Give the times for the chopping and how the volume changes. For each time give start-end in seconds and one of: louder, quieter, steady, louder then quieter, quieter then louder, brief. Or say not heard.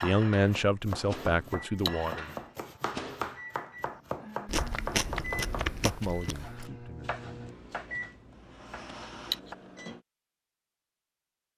0.0-9.6 quieter.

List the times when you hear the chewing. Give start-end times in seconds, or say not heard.
4.5-6.7.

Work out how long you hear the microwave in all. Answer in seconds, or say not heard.
10 s.